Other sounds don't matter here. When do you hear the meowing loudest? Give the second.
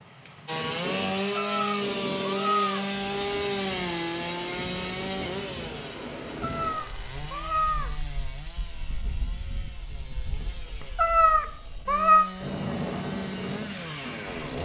12 s.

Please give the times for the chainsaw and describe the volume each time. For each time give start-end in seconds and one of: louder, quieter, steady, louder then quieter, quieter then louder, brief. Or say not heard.
0.0-14.5 quieter then louder.